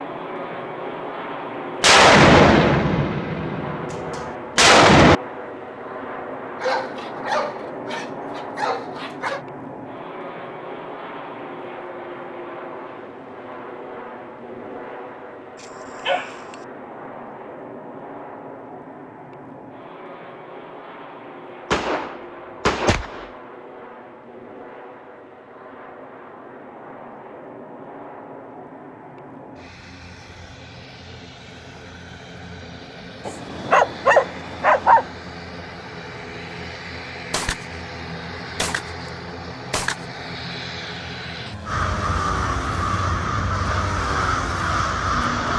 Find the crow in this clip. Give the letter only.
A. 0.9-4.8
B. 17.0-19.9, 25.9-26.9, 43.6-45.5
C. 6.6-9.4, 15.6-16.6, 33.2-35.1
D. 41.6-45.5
D.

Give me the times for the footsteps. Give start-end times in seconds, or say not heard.
not heard.